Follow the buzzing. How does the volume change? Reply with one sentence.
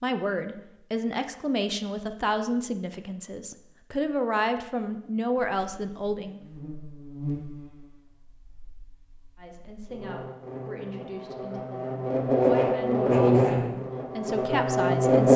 The loudness of the buzzing goes down, then up.